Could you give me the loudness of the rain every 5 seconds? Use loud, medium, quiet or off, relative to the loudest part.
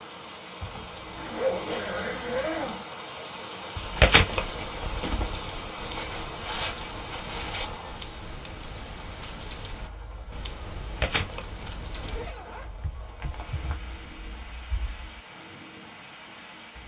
loud, loud, medium, medium.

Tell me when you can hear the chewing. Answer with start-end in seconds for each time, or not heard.
3.8-5.3, 10.8-12.2.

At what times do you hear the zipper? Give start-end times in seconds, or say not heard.
0.6-2.8, 5.8-7.7, 11.9-13.8.